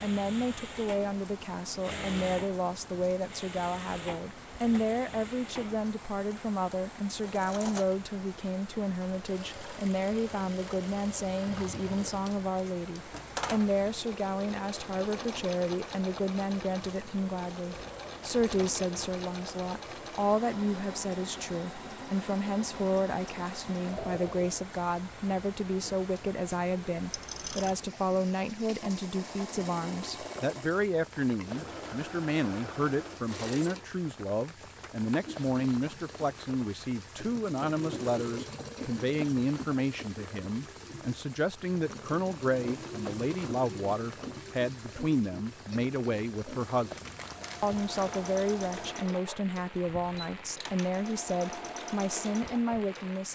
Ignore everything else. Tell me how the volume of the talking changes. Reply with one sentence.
The loudness of the talking stays about the same.